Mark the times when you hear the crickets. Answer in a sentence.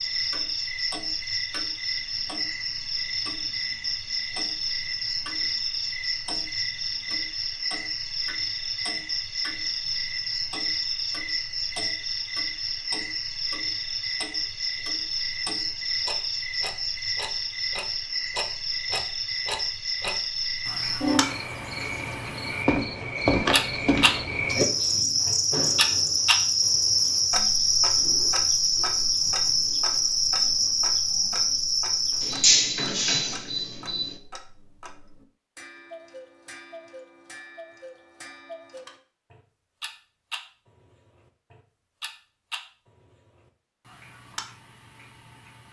The crickets can be heard from 0.0 to 34.2 s.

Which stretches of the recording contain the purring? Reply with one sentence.
The purring can't be heard in this clip.